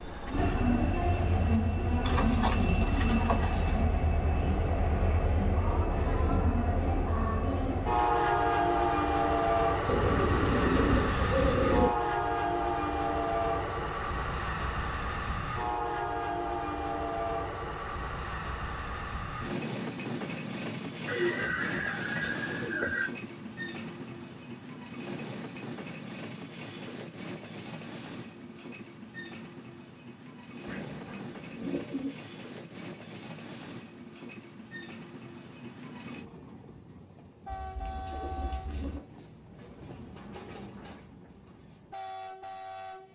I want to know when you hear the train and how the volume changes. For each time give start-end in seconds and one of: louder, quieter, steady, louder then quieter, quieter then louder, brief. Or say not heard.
0.0-43.1 quieter.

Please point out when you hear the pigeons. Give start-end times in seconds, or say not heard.
2.0-3.9, 9.8-11.9, 21.1-23.1, 30.6-32.1, 37.5-39.0.